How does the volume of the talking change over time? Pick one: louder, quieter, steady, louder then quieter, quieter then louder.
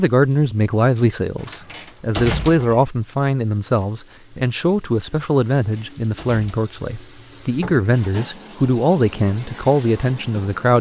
steady.